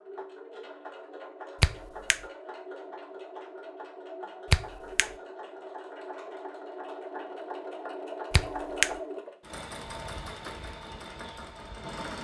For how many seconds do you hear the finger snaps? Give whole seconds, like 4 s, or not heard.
2 s.